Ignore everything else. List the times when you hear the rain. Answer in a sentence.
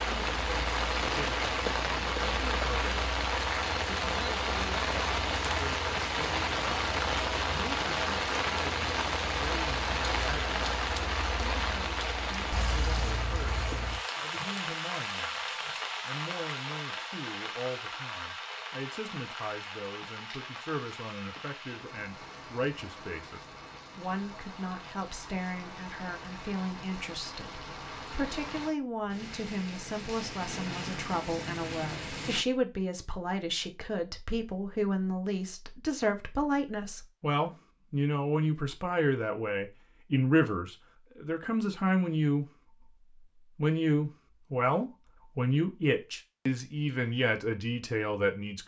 The rain can be heard from 0.0 to 32.5 s.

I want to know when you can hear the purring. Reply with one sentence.
You can't hear the purring here.